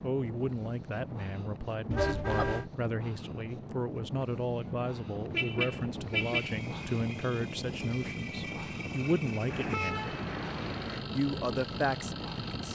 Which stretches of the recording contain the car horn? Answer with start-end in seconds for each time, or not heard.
1.9-2.6, 4.5-6.5, 9.5-11.1.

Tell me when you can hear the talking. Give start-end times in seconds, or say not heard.
0.0-10.2, 11.2-12.7.